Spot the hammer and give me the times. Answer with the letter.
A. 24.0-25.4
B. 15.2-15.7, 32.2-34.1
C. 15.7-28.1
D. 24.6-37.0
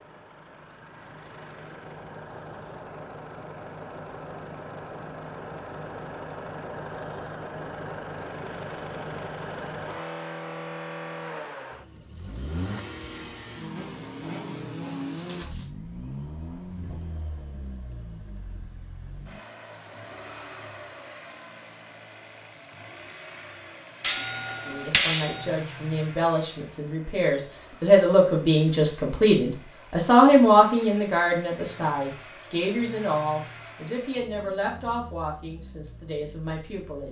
A.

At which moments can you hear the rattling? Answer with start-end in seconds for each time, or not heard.
15.2-15.7, 32.2-34.1.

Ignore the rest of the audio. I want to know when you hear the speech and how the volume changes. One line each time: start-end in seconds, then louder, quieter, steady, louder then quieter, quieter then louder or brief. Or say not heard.
24.6-37.0 louder then quieter.